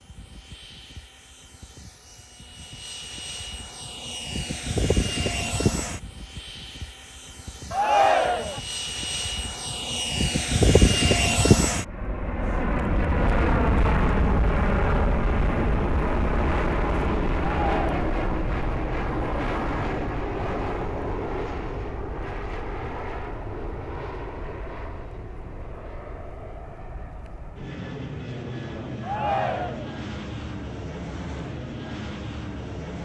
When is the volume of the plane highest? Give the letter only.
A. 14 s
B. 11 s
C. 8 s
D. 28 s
B.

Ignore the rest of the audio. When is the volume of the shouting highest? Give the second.
8 s.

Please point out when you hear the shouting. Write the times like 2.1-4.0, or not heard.
7.7-8.6, 17.4-18.1, 29.0-29.9.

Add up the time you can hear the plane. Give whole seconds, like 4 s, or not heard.
33 s.